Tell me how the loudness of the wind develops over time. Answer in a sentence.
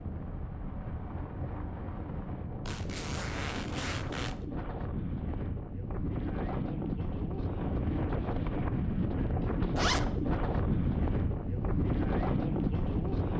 The loudness of the wind goes up.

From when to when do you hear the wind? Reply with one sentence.
The wind can be heard from 0.0 to 13.3 s.